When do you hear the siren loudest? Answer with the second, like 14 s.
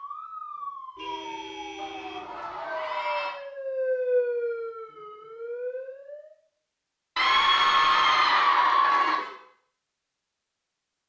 4 s.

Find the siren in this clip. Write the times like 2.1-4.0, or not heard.
0.0-6.3.